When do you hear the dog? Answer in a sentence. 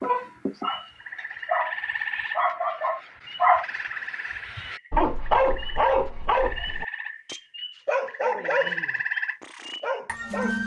You can hear the dog from 0.0 to 10.6 s.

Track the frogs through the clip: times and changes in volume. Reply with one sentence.
You can hear the frogs from 0.0 to 10.6 s, getting quieter then louder.